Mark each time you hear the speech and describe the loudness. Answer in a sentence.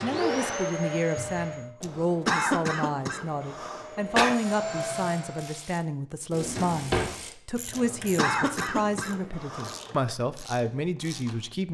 The speech can be heard from 0.0 to 11.7 s, at a steady volume.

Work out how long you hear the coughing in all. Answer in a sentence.
The coughing can be heard for 5 seconds in total.